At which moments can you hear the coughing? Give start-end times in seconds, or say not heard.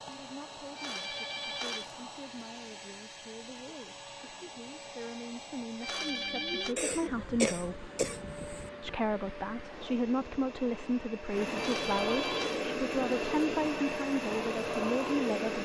6.8-8.7.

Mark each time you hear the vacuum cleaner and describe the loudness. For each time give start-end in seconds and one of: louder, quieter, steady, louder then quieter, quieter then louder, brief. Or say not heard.
0.0-15.5 louder.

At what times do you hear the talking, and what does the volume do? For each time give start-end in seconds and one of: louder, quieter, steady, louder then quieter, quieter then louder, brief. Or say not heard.
0.1-7.9 louder
8.8-15.5 steady.